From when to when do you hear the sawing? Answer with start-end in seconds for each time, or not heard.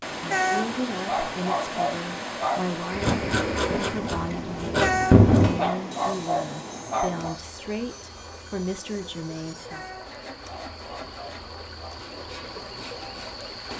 2.9-13.3.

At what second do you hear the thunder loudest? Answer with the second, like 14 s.
5 s.